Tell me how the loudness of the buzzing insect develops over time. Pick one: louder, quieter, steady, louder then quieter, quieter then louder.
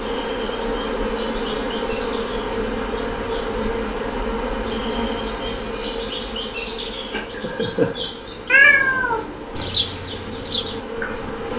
quieter.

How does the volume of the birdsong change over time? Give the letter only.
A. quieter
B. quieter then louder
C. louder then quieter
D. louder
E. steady
D.